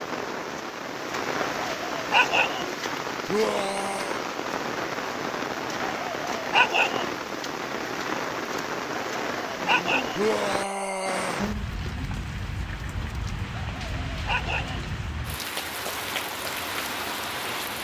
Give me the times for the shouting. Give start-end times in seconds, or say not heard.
3.2-4.2, 10.2-11.4.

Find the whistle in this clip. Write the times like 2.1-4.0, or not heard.
not heard.